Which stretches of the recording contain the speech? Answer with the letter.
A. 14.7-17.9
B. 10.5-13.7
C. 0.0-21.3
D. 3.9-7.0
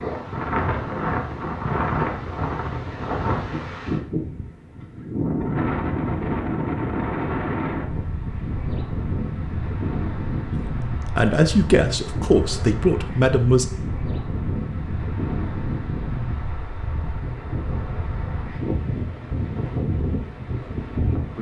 B.